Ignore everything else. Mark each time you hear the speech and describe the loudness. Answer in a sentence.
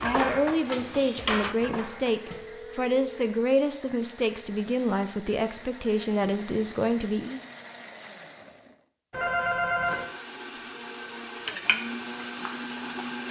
You can hear the speech from 0.0 to 7.4 s, at a steady volume.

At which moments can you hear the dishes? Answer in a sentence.
You can hear the dishes from 0.0 to 2.6 s and from 11.4 to 13.2 s.